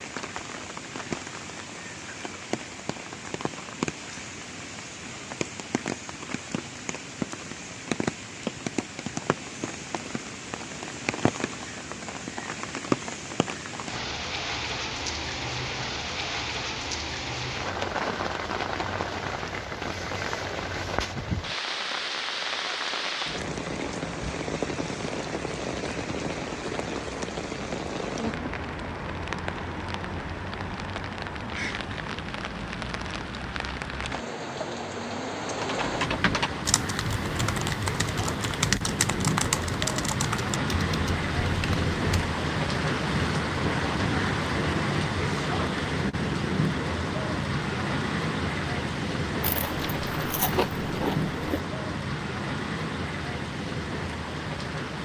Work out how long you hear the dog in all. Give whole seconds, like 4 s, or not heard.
not heard.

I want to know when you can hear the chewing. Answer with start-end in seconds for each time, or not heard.
49.4-51.6.